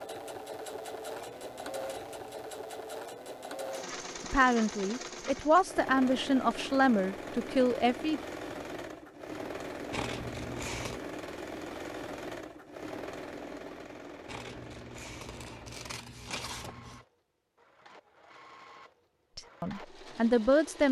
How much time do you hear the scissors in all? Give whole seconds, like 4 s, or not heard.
5 s.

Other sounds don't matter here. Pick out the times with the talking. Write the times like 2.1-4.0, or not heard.
4.2-8.2, 19.4-20.8.